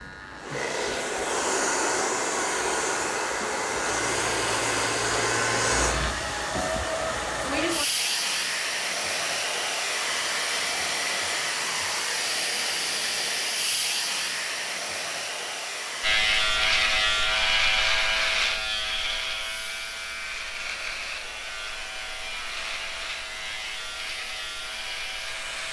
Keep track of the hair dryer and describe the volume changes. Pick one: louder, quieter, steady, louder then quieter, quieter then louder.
quieter.